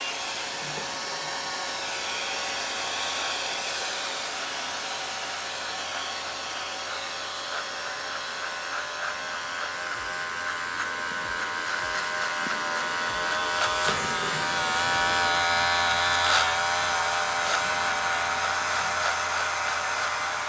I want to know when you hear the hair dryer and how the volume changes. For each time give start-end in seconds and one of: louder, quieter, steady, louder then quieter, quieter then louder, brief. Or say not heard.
0.0-20.4 quieter then louder.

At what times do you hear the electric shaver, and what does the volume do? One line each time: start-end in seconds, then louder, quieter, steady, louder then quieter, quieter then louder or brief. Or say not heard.
0.0-20.4 louder.